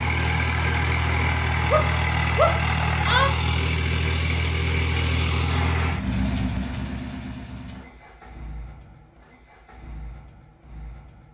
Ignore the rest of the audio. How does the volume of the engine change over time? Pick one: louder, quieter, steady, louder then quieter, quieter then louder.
quieter.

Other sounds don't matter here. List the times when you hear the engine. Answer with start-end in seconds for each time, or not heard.
0.0-11.2.